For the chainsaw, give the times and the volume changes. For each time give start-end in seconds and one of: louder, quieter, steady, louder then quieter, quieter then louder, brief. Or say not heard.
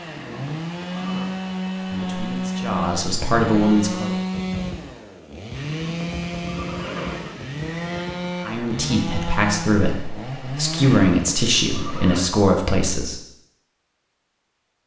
0.0-11.0 steady.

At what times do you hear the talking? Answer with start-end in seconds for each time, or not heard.
1.9-4.1, 8.4-13.2.